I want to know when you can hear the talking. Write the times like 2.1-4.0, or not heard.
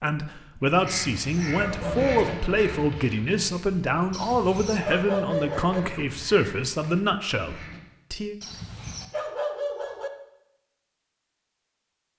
0.0-8.3.